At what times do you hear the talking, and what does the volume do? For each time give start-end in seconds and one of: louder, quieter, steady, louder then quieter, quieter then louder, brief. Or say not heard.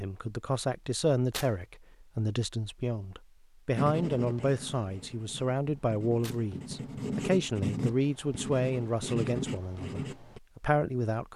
0.0-11.3 steady.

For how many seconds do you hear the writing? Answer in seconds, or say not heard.
7 s.